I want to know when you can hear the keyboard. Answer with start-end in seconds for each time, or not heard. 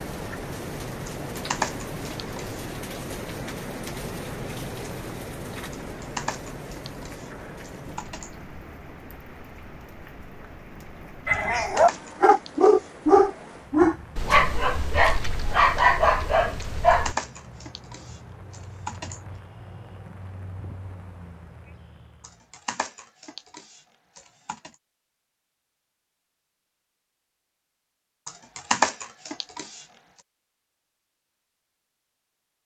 1.1-2.6, 5.7-8.3, 11.3-12.9, 16.6-19.2, 22.2-24.7, 28.2-29.9.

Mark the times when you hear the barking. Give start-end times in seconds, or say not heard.
11.2-17.1.